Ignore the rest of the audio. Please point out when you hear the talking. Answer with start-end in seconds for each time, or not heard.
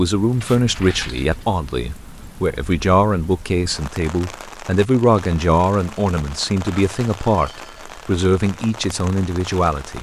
0.0-9.9.